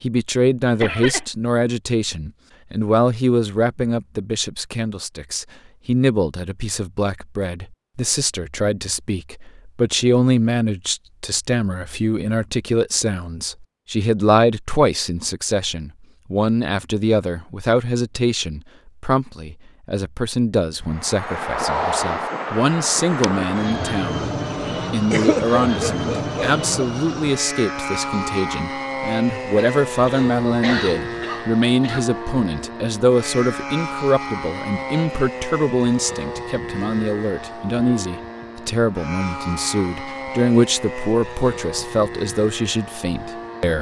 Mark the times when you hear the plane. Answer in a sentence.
The plane can be heard from 20.9 to 43.7 s.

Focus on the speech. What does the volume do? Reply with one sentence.
The volume of the speech stays about the same.